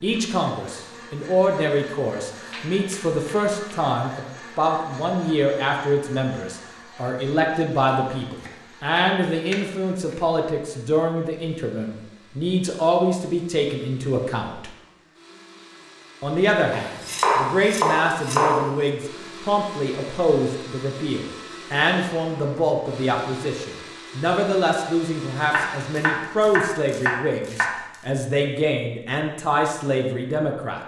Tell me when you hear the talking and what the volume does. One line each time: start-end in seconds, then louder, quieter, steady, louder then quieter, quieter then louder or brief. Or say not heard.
0.0-14.7 steady
16.2-30.8 steady.